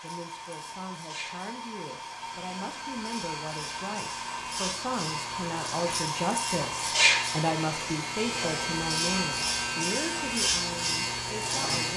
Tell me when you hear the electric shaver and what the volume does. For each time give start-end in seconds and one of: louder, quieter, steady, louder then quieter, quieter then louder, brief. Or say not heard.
0.0-11.9 louder.